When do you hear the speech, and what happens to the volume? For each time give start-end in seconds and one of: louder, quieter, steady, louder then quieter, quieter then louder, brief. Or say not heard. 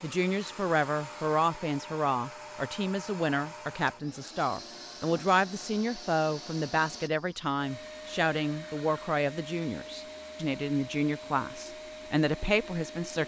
0.0-13.2 steady.